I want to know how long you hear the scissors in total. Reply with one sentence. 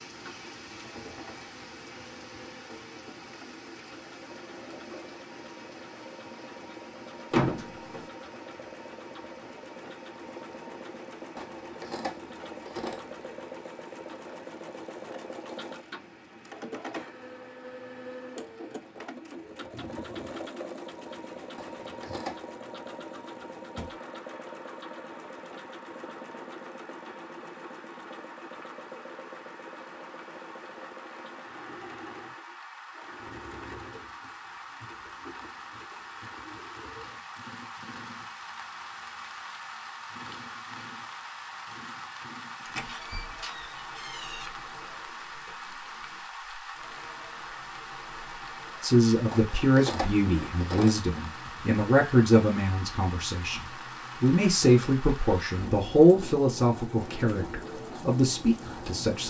The scissors can be heard for 5 seconds in total.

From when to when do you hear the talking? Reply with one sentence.
The talking can be heard from 48.8 to 59.2 s.